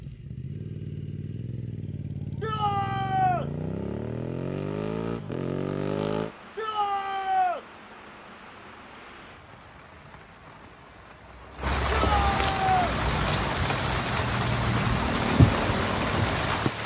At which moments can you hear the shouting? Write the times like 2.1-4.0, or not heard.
2.4-3.5, 6.5-7.7, 11.9-12.9.